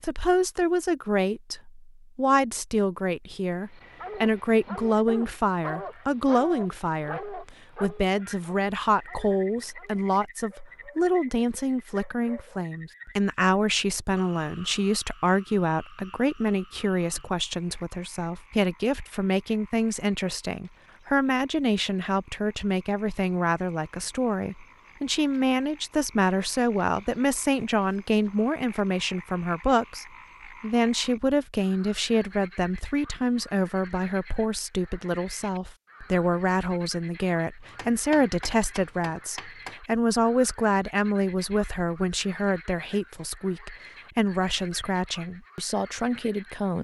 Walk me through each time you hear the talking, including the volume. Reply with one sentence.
You can hear the talking from 0.0 to 46.8 s, at a steady volume.